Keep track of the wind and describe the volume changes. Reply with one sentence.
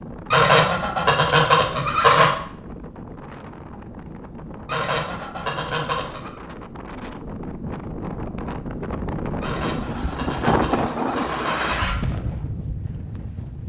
The volume of the wind goes up.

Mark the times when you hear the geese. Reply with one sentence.
The geese can be heard from 0.3 to 2.3 s, from 4.7 to 6.3 s and from 9.4 to 11.9 s.